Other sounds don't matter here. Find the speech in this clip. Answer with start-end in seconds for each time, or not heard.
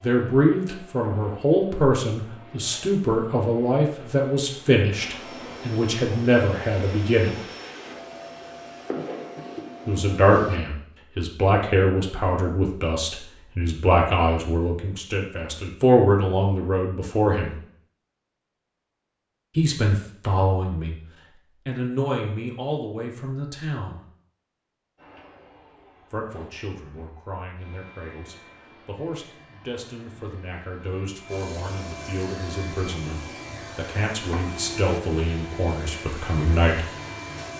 0.0-7.3, 9.8-17.5, 19.6-20.9, 21.6-24.0, 26.1-36.9.